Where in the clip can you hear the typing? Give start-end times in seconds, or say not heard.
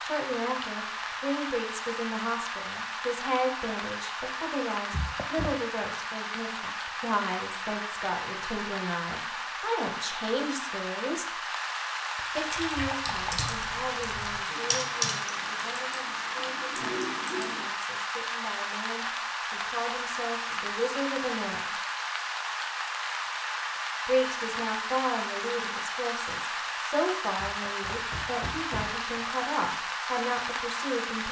12.4-17.6.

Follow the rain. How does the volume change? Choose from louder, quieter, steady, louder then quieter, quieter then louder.
steady.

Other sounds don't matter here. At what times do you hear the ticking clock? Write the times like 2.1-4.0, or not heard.
not heard.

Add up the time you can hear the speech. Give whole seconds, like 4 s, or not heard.
28 s.